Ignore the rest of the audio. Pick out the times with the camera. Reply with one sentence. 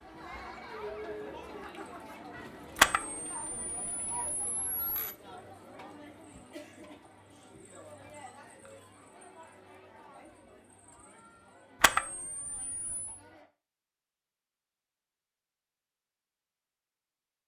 You can hear the camera from 2.8 to 5.2 s and from 11.8 to 13.2 s.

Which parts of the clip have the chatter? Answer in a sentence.
The chatter can be heard from 0.0 to 13.5 s.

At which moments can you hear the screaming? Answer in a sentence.
The screaming can't be heard in this clip.